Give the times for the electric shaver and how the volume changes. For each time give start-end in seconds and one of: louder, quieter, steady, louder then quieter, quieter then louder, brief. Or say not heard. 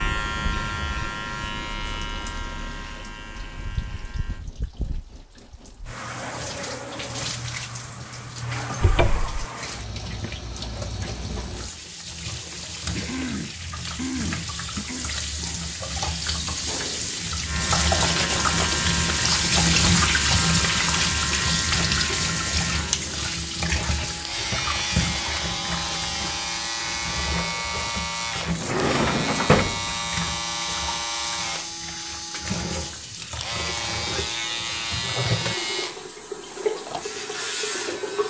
0.0-4.5 quieter
17.4-38.2 steady.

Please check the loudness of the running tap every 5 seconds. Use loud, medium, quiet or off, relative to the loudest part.
quiet, medium, medium, loud, loud, medium, medium, medium.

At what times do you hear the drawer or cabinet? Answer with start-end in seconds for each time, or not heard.
8.8-9.4, 28.4-30.3.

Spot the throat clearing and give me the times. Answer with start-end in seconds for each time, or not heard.
12.9-15.1.